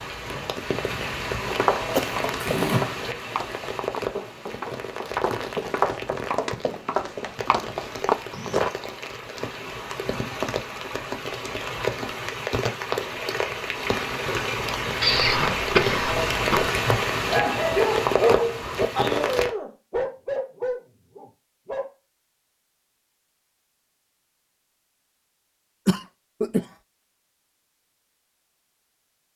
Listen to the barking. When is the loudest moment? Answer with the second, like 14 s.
18 s.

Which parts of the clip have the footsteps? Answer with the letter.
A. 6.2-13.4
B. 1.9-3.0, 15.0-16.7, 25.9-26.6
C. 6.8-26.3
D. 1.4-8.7
D.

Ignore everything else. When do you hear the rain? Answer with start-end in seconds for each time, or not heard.
0.0-19.5.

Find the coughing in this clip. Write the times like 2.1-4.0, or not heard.
1.9-3.0, 15.0-16.7, 25.9-26.6.